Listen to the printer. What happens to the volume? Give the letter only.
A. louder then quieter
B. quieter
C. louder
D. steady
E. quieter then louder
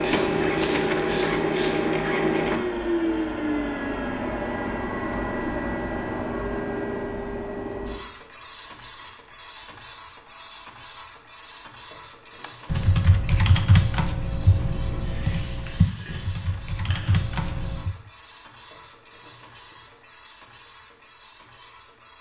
B.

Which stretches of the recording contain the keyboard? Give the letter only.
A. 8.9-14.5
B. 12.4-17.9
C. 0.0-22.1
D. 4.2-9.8
B.